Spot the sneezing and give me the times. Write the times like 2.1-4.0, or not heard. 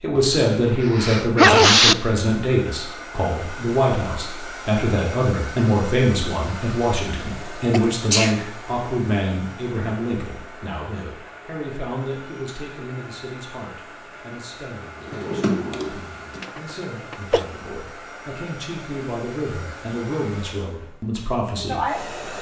0.1-1.9, 7.7-8.4, 16.4-17.4.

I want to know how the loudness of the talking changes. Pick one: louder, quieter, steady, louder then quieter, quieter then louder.
quieter then louder.